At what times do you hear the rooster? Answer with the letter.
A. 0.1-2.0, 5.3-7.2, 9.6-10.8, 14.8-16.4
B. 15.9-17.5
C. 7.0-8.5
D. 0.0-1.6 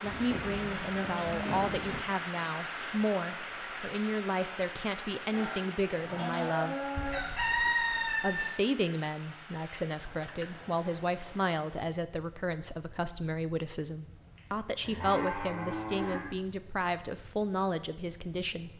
C.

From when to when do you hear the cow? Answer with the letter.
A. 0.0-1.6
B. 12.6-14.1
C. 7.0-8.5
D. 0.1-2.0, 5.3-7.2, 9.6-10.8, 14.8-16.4
D.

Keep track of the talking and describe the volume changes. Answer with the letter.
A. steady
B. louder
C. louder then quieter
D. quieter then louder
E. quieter
A.